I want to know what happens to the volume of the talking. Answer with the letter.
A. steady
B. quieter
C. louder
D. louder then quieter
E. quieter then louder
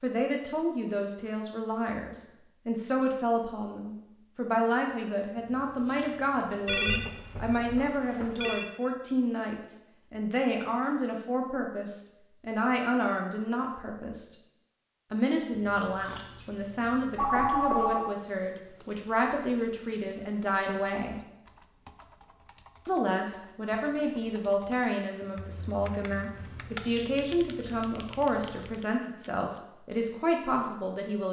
A.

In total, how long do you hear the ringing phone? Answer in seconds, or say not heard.
4 s.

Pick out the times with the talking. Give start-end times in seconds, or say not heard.
0.0-14.3, 15.1-21.1, 22.9-31.2.